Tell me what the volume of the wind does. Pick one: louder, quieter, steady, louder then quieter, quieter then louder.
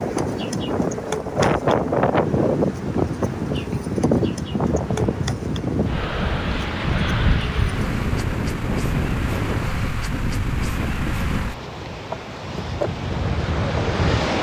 quieter.